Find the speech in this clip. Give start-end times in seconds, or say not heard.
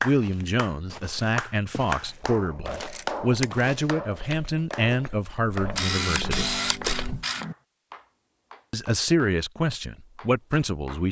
0.0-6.6, 8.7-11.0.